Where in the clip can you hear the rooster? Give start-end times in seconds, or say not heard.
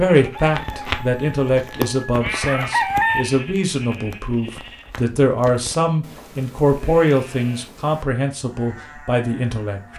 0.3-3.2.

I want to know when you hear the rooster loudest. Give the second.
3 s.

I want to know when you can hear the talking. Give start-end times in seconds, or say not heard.
0.0-9.9.